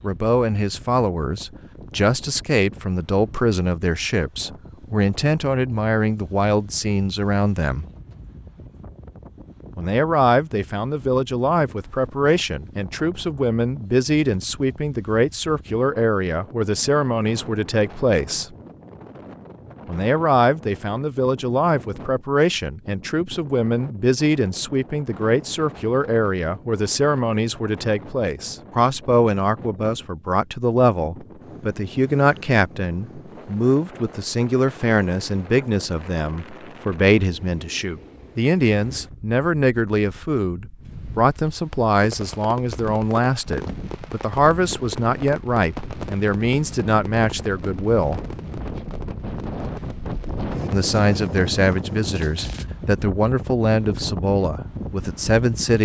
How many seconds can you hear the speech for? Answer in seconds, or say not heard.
50 s.